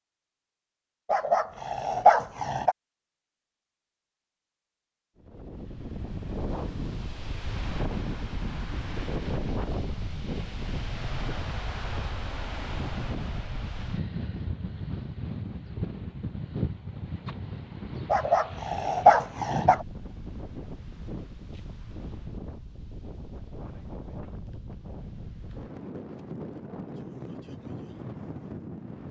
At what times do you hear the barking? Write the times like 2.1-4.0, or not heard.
1.1-2.8, 18.1-19.9.